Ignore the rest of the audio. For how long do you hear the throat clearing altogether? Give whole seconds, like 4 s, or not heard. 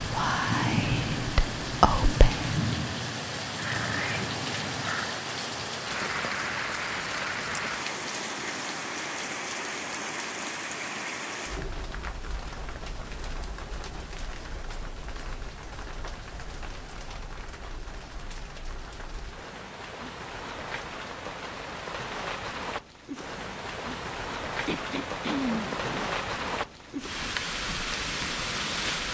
3 s.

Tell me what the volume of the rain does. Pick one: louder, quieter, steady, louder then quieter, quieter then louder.
quieter then louder.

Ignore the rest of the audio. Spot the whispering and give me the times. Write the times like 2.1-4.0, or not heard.
0.0-2.5.